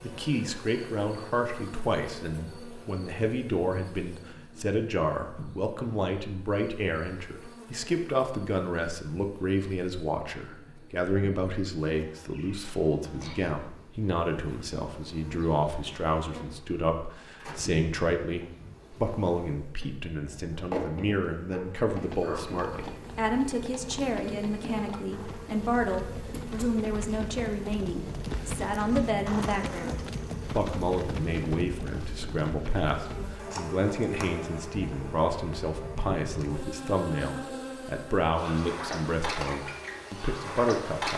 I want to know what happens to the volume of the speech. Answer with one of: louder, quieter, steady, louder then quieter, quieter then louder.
steady.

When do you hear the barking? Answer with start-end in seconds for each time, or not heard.
21.5-22.9.